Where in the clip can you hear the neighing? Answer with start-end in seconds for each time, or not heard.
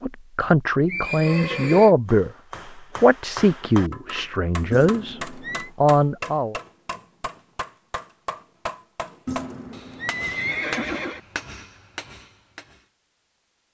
0.8-1.9, 4.7-5.7, 9.2-11.2.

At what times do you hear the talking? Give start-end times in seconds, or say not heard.
0.0-2.3, 3.0-5.2, 5.8-6.5.